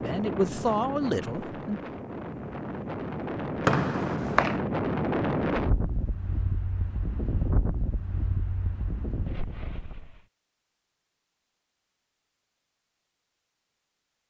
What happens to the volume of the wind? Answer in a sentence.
The loudness of the wind goes up, then down.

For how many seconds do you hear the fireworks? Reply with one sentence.
The fireworks can't be heard in this clip.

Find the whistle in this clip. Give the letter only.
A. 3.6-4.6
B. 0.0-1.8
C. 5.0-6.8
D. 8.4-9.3
A.